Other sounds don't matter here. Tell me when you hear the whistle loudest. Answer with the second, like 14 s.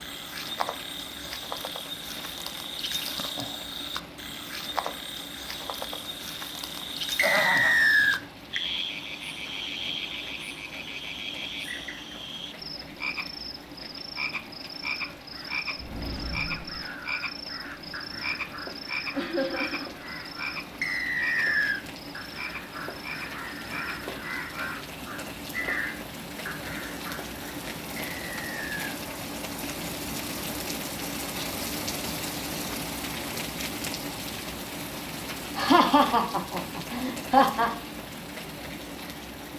8 s.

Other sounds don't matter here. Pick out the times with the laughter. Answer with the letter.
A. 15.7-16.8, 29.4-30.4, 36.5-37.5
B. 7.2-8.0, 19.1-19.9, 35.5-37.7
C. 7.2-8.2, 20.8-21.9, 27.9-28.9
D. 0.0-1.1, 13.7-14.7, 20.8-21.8
B.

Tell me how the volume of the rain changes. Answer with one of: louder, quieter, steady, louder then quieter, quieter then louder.
louder.